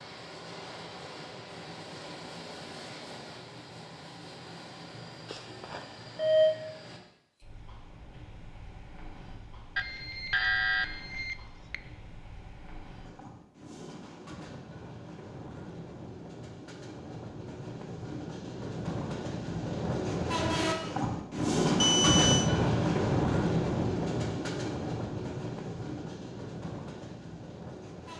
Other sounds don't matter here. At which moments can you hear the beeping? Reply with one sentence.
You can hear the beeping from 5.3 to 6.5 s, from 9.8 to 11.8 s and from 21.8 to 22.5 s.